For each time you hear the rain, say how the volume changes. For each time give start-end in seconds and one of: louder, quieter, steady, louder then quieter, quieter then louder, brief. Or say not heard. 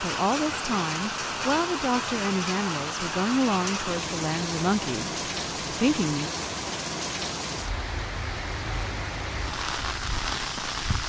0.0-11.0 steady.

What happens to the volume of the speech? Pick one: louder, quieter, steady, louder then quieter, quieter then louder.
steady.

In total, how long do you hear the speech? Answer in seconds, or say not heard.
6 s.